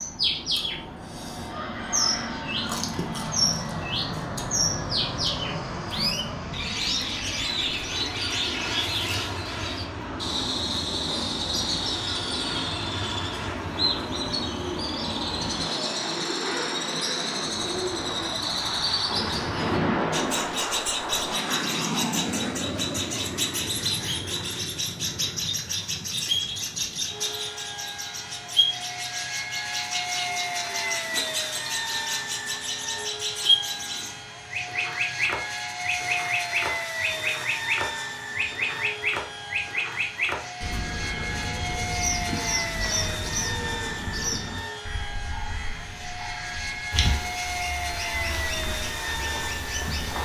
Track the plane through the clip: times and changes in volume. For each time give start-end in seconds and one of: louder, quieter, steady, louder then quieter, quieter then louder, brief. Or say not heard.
0.0-50.2 steady.